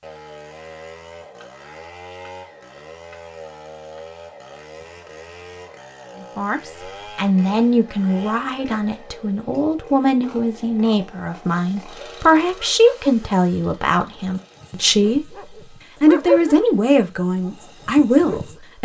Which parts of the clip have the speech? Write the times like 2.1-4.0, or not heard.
6.3-18.8.